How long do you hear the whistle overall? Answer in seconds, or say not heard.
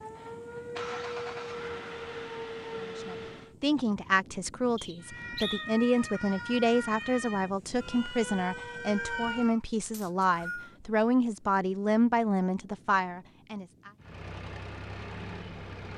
2 s.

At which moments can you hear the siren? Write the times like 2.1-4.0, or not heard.
0.0-3.5, 5.0-9.6.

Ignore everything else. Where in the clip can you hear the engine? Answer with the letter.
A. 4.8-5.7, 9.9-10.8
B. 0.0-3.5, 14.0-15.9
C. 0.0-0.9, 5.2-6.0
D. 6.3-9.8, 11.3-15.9
B.